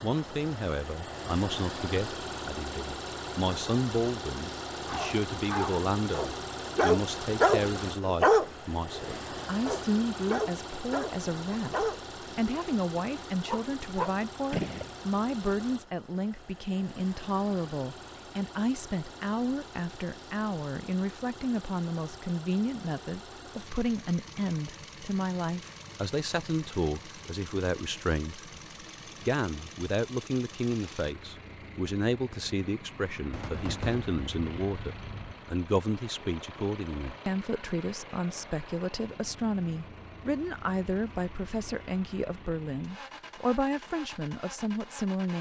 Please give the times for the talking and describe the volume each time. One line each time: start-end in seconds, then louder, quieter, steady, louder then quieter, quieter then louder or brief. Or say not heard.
0.0-28.5 steady
29.2-45.3 steady.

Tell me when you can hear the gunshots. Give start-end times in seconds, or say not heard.
14.5-14.9, 33.3-35.4.